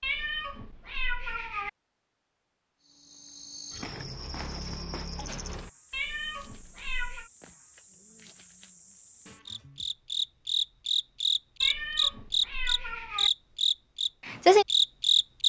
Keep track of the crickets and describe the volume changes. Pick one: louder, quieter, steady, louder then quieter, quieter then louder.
quieter then louder.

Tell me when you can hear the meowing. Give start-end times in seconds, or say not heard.
0.0-1.7, 5.9-7.3, 11.6-13.3.